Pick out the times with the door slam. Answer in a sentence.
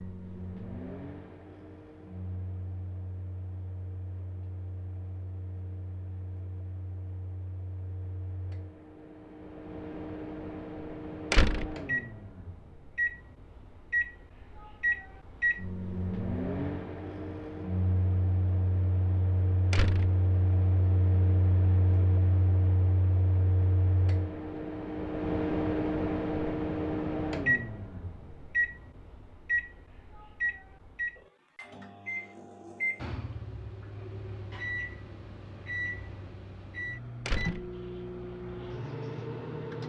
You can hear the door slam from 11.3 to 11.8 s, from 19.7 to 20.1 s and from 37.2 to 37.7 s.